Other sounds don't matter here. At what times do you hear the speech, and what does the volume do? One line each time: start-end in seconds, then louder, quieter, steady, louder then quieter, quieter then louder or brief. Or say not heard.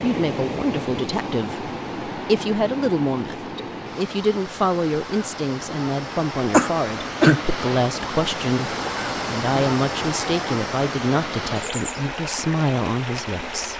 0.0-13.7 steady.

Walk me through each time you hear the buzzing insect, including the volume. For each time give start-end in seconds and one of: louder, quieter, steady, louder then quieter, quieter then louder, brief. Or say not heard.
not heard.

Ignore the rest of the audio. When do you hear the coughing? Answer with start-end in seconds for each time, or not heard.
6.5-7.4.